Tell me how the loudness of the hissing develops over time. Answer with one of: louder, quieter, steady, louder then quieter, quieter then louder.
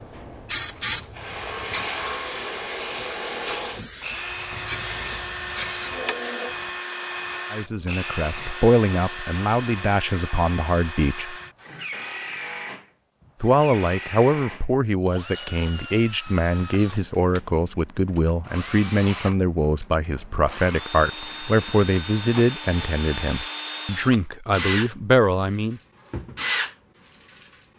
quieter then louder.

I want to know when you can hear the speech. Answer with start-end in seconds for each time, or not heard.
7.5-11.3, 13.4-25.8.